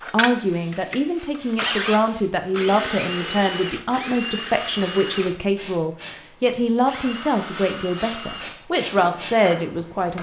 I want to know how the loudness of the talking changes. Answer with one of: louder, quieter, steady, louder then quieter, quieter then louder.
steady.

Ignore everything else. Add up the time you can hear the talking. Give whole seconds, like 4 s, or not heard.
10 s.